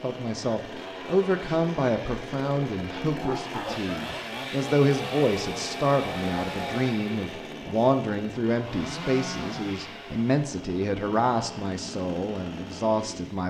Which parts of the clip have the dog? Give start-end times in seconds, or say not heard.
3.1-4.4.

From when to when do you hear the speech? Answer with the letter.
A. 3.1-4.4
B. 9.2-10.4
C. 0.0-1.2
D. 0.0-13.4
D.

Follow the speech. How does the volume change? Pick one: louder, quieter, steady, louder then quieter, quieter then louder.
steady.